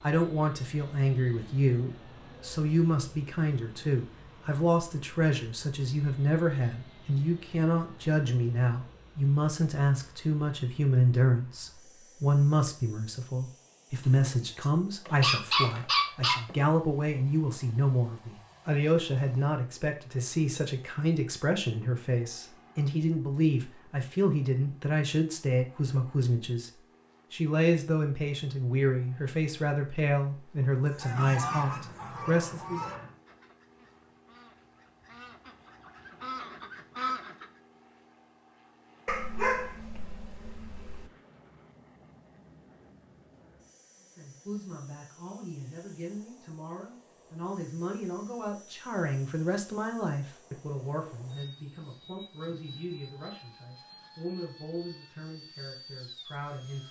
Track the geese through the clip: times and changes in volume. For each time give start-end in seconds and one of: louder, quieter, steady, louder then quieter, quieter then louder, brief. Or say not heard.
30.9-37.5 quieter then louder.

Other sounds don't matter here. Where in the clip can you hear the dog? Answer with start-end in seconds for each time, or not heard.
14.2-16.6, 31.4-33.1, 39.0-41.1.